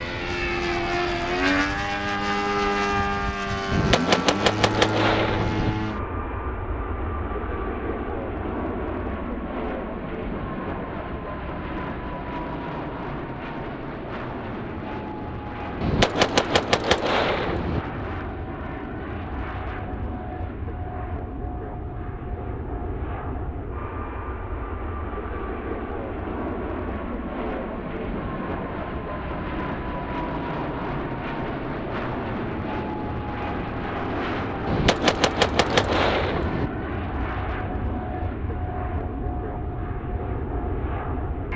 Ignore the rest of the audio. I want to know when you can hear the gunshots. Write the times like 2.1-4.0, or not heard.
3.7-5.7, 15.8-17.8, 34.6-36.7.